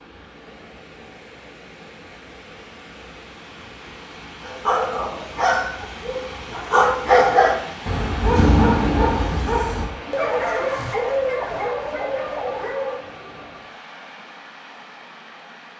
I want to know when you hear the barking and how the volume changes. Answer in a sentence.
You can hear the barking from 4.5 to 13.0 s, getting louder then quieter.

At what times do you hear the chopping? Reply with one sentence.
The chopping can't be heard in this clip.